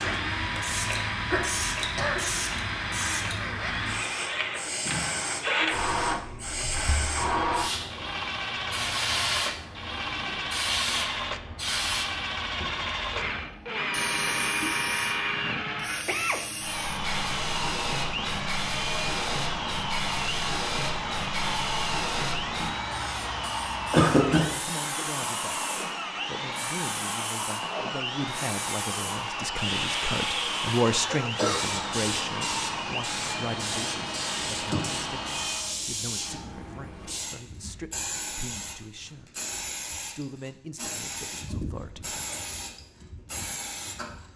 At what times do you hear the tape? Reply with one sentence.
The tape can't be heard in this clip.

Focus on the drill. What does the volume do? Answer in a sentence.
The volume of the drill stays about the same.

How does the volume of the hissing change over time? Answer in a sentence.
The loudness of the hissing stays about the same.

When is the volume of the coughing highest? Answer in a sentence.
The volume of the coughing peaks at 24 seconds.